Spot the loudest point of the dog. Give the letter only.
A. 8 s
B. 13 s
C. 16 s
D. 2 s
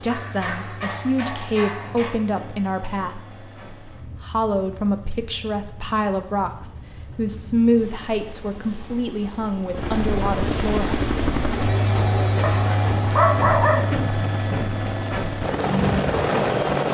B.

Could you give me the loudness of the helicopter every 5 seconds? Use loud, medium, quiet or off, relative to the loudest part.
quiet, quiet, loud, loud.